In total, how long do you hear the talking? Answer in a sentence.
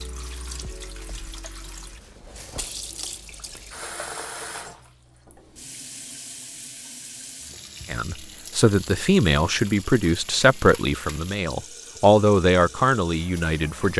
You can hear the talking for 6 seconds altogether.